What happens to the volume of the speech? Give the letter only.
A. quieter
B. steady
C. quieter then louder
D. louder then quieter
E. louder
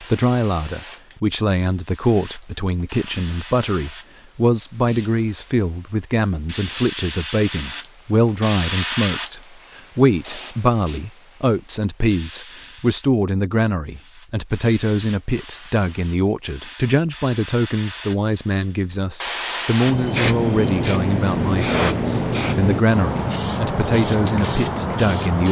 B.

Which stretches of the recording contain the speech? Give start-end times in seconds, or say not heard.
0.0-25.4.